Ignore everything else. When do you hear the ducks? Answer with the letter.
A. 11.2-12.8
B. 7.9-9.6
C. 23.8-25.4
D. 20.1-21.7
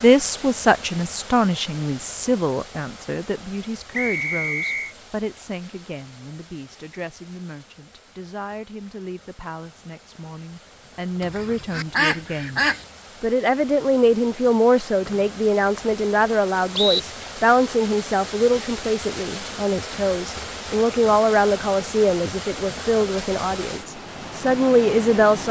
A.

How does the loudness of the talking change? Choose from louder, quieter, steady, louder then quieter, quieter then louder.
quieter then louder.